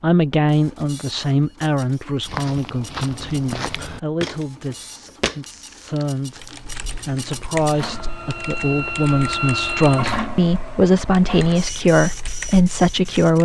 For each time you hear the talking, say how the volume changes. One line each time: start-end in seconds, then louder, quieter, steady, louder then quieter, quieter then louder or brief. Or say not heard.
0.0-13.4 quieter then louder.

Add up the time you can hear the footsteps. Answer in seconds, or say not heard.
3 s.